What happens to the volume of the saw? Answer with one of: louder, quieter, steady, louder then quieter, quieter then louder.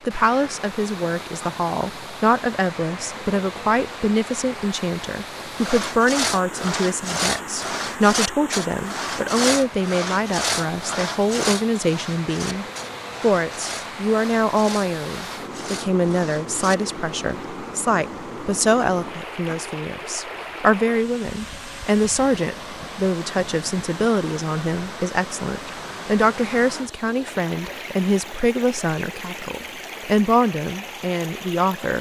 quieter.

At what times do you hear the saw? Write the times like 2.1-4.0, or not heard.
5.4-16.8.